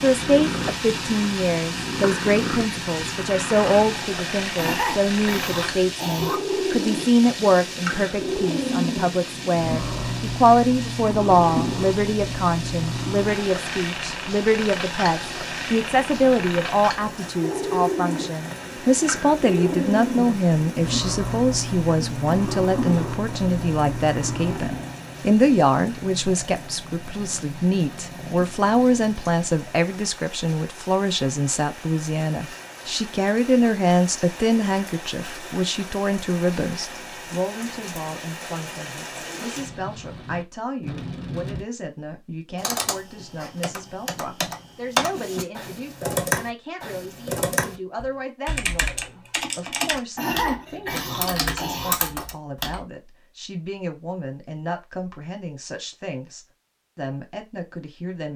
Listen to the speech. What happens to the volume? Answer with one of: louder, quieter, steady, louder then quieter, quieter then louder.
quieter.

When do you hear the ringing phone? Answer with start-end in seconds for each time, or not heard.
not heard.